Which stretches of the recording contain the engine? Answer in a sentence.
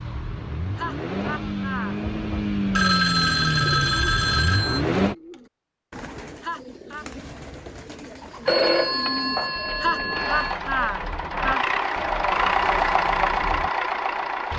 You can hear the engine from 0.0 to 5.2 s and from 10.1 to 14.5 s.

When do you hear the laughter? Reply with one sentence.
You can hear the laughter from 0.8 to 1.9 s, from 6.4 to 7.0 s and from 9.8 to 11.7 s.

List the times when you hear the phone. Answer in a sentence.
The phone can be heard from 2.8 to 4.8 s and from 8.4 to 10.6 s.